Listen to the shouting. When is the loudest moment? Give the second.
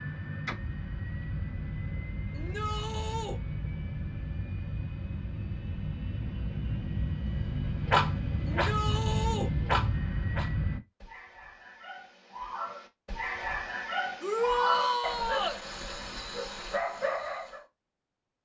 15 s.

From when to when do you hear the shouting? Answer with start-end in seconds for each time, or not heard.
2.3-3.4, 8.4-9.5, 14.2-15.6.